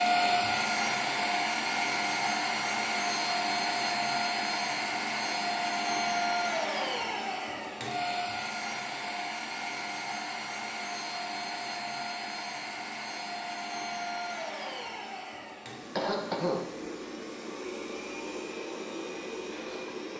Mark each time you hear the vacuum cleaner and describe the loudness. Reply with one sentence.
You can hear the vacuum cleaner from 0.0 to 20.1 s, getting quieter.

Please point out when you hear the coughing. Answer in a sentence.
You can hear the coughing from 15.9 to 17.0 s.